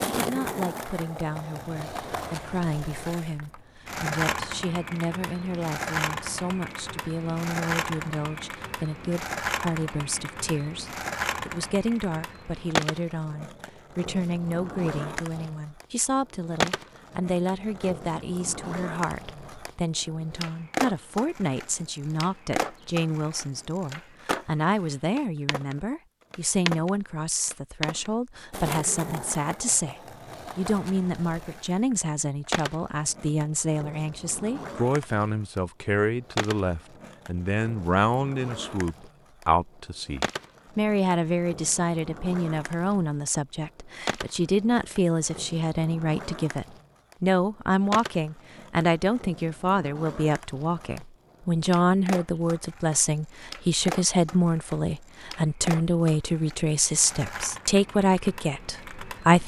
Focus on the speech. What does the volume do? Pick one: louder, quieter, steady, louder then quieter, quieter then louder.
louder.